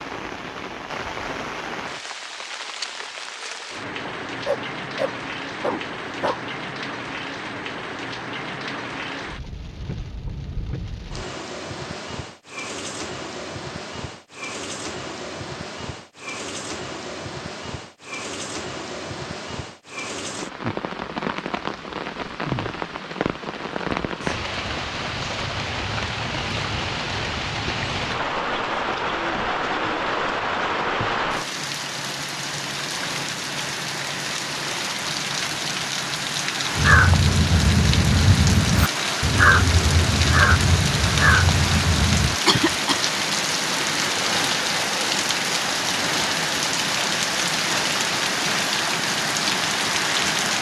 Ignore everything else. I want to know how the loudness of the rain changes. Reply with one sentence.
The loudness of the rain goes up.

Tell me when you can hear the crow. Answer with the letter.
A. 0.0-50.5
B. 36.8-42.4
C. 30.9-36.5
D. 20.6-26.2
B.